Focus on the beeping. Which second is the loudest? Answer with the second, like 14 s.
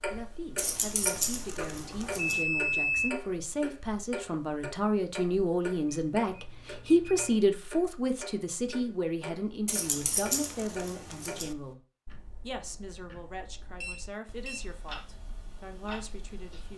3 s.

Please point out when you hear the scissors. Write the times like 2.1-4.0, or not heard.
0.6-2.5, 9.7-11.6.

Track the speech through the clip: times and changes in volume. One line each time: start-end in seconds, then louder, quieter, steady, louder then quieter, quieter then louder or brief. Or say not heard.
0.1-11.8 louder then quieter
12.4-16.7 quieter then louder.